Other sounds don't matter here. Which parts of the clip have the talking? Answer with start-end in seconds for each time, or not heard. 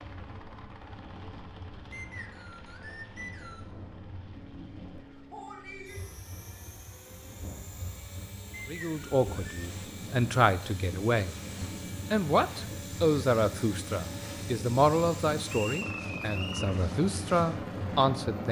8.7-18.4.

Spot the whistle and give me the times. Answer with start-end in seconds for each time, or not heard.
1.9-3.7, 8.5-9.7, 15.5-16.8.